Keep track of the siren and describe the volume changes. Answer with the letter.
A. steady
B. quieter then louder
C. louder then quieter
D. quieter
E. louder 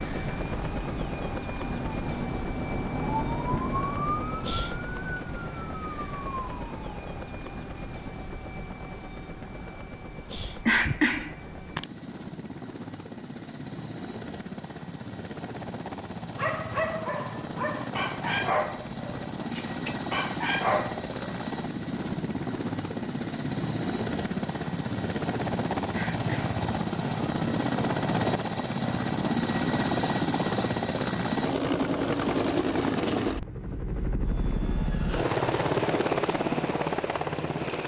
C.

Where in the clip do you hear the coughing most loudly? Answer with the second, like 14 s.
11 s.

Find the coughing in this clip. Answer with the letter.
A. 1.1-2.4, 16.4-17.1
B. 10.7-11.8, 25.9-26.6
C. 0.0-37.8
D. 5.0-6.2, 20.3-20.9
B.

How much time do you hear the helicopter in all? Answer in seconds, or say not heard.
38 s.